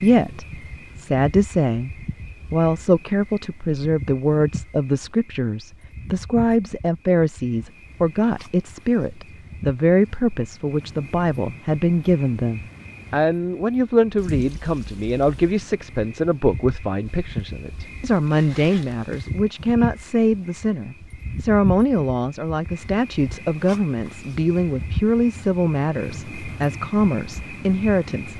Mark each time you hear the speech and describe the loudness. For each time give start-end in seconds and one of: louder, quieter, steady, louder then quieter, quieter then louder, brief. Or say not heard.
0.0-28.3 steady.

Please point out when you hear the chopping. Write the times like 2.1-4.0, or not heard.
not heard.